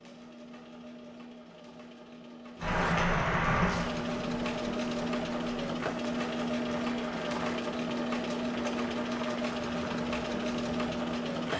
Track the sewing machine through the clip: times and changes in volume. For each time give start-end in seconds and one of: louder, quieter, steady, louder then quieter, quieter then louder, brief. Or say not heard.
0.0-11.5 louder.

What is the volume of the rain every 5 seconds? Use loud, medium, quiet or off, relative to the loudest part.
loud, quiet, quiet.